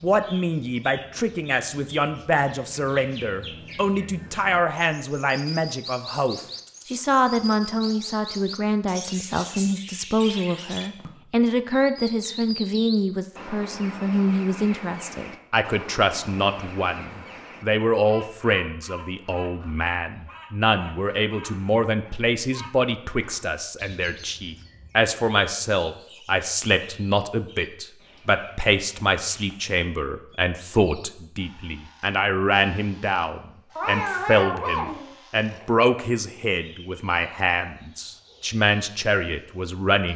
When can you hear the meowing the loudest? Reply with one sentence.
The volume of the meowing peaks at 34 seconds.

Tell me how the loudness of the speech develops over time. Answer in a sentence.
The volume of the speech stays about the same.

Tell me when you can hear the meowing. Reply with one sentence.
You can hear the meowing from 6.7 to 7.7 s and from 33.8 to 35.8 s.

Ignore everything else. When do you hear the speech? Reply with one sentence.
The speech can be heard from 0.0 to 40.1 s.